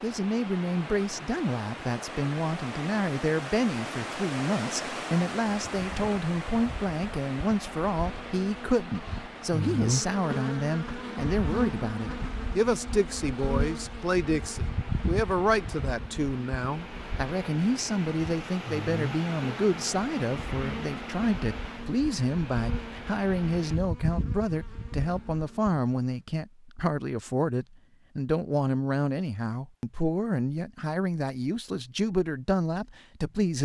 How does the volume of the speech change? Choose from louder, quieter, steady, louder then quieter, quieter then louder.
steady.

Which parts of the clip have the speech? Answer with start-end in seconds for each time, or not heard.
0.0-33.6.